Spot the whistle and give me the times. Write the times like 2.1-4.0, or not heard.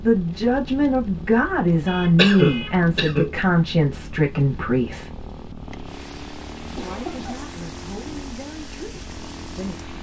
not heard.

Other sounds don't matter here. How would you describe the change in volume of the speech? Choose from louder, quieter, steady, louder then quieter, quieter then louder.
quieter.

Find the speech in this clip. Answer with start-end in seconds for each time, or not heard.
0.0-5.1, 6.7-9.8.